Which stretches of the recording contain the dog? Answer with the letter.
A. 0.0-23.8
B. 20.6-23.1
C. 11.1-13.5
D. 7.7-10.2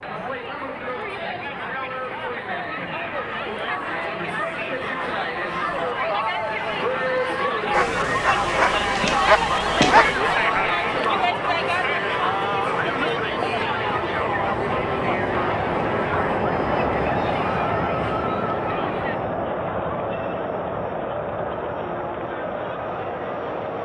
D.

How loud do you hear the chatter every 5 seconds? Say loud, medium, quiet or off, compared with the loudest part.
medium, loud, loud, medium, medium.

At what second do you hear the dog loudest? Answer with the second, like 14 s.
10 s.